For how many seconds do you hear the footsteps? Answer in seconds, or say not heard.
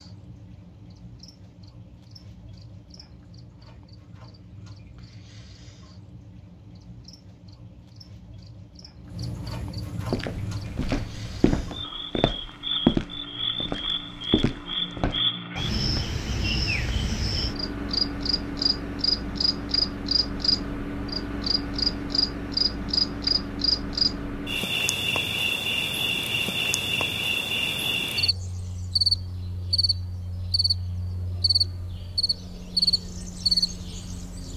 5 s.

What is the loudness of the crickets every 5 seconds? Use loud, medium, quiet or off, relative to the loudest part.
quiet, quiet, medium, loud, loud, loud, loud.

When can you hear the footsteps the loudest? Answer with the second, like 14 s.
13 s.